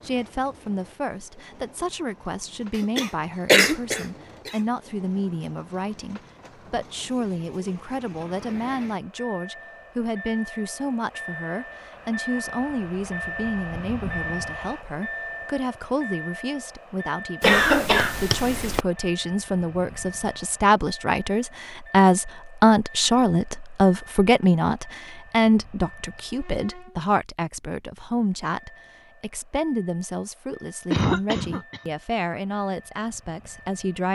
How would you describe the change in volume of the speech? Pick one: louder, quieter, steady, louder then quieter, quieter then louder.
louder then quieter.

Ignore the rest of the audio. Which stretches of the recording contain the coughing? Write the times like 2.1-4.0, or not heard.
2.8-4.5, 17.4-18.8, 30.9-31.9.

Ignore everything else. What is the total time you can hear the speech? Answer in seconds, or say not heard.
34 s.